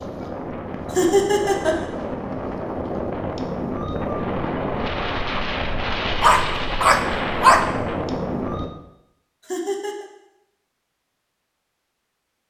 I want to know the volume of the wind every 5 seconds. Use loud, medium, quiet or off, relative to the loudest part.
loud, loud, off.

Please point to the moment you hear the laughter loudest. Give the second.
1 s.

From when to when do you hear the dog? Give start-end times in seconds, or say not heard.
6.2-7.7.